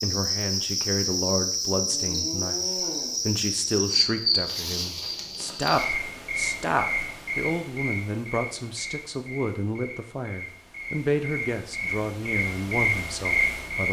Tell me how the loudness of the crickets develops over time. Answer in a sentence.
The volume of the crickets goes down, then up.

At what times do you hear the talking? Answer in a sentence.
The talking can be heard from 0.0 to 13.8 s.